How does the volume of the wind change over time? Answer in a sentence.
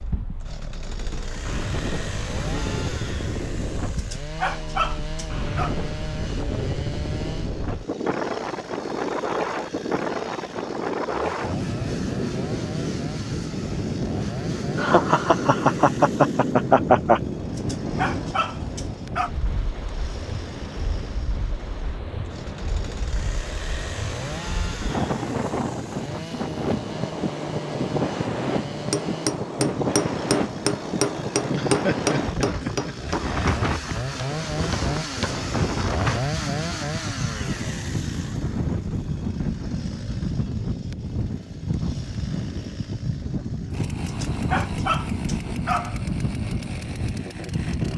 The loudness of the wind stays about the same.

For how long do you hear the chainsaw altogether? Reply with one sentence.
You can hear the chainsaw for 48 seconds altogether.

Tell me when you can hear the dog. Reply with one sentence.
You can hear the dog from 4.0 to 5.8 s, from 17.6 to 19.3 s and from 44.0 to 46.0 s.